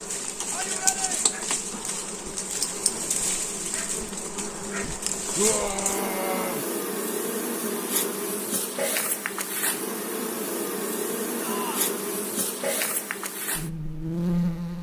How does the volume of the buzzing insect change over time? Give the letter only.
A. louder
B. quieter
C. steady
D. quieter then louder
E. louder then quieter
C.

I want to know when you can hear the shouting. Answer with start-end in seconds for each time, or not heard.
0.5-1.4, 5.3-6.7, 11.4-11.9.